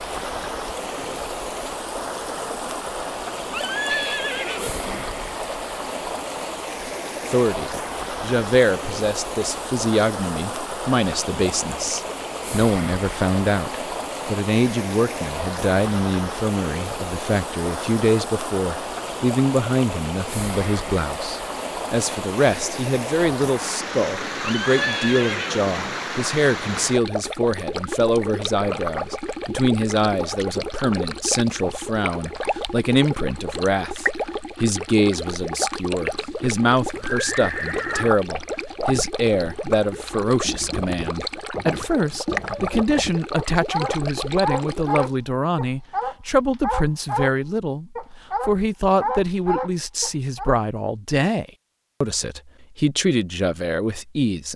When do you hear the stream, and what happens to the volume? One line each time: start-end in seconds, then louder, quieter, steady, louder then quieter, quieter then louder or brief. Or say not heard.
0.0-45.1 steady.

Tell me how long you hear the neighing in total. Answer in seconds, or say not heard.
4 s.